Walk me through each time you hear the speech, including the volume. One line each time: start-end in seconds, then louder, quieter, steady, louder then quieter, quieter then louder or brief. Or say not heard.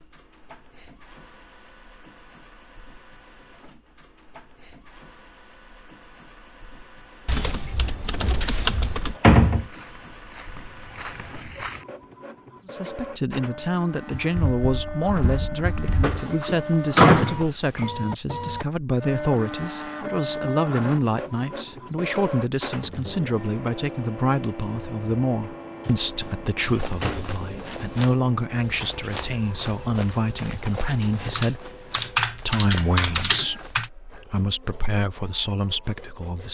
12.7-36.4 steady.